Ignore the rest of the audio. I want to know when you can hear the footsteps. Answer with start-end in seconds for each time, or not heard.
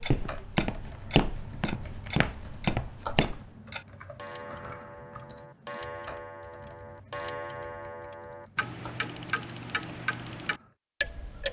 0.0-3.4.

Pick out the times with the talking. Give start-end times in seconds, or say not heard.
not heard.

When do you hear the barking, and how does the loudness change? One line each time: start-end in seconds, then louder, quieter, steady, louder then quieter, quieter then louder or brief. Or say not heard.
not heard.